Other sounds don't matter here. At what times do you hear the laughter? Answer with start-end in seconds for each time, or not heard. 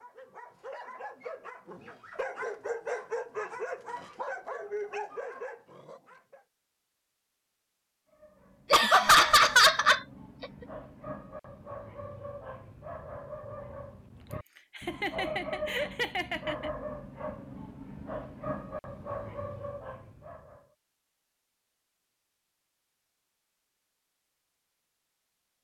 8.7-10.4, 14.8-16.7.